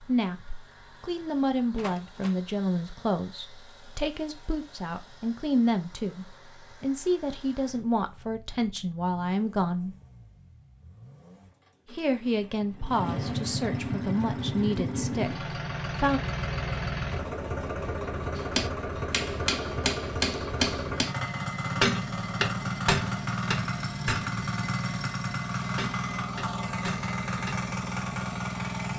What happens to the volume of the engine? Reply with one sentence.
The volume of the engine goes up.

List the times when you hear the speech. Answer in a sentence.
You can hear the speech from 0.0 to 9.9 s and from 11.9 to 16.2 s.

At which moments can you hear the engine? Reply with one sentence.
You can hear the engine from 0.0 to 28.9 s.